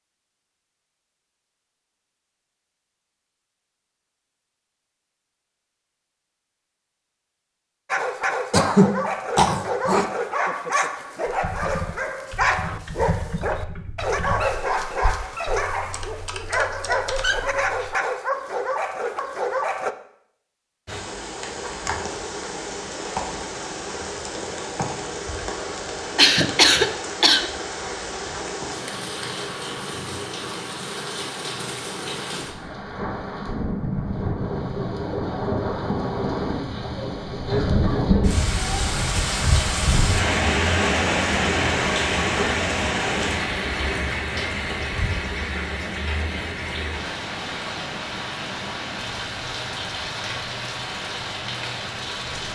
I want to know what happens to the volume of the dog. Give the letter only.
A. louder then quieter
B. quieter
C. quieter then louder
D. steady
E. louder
D.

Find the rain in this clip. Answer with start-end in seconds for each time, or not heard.
20.9-52.5.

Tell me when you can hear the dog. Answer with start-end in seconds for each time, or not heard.
7.8-19.9.